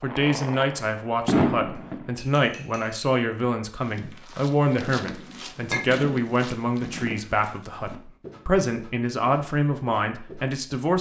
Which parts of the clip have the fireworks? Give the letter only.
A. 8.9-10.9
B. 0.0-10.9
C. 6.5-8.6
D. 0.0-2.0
D.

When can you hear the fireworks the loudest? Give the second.
1 s.